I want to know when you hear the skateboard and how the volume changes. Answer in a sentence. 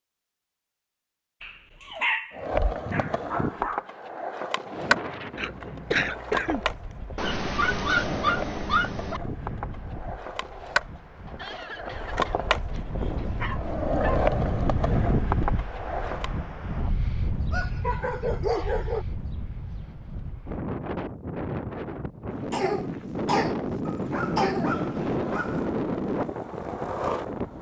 You can hear the skateboard from 2.3 to 16.3 s, getting quieter then louder; and briefly from 24.6 to 27.5 s.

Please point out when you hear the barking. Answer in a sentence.
You can hear the barking from 1.4 to 3.9 s, from 7.2 to 9.2 s, from 13.2 to 14.3 s, from 17.5 to 19.1 s and from 23.9 to 25.7 s.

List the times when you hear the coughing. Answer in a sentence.
You can hear the coughing from 5.3 to 6.7 s, from 11.2 to 13.3 s and from 22.5 to 24.9 s.